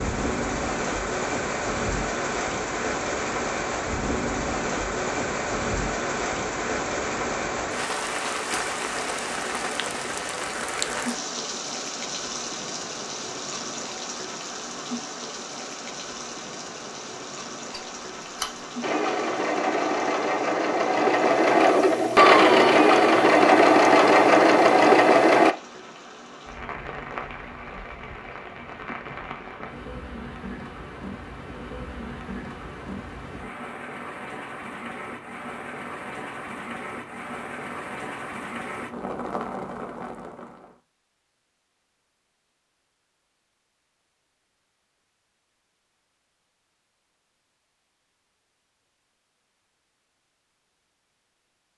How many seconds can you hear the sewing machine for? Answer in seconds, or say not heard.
7 s.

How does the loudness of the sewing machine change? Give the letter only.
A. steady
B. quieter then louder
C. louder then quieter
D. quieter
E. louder
E.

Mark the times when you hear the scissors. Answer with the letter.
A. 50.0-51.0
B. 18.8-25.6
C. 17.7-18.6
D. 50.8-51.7
C.